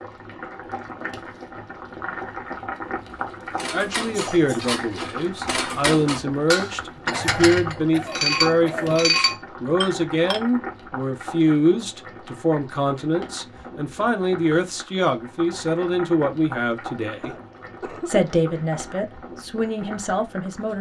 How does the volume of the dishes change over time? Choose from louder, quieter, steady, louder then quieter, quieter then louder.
louder.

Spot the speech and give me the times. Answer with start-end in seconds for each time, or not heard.
3.7-20.7.